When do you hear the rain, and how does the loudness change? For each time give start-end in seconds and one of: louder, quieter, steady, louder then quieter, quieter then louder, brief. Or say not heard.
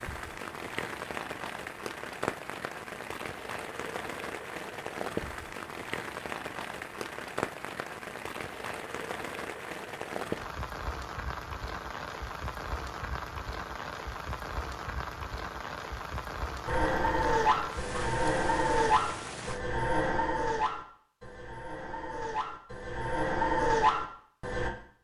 0.0-19.6 steady.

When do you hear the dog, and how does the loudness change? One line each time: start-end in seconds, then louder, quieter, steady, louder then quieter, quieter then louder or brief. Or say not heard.
16.6-24.7 quieter then louder.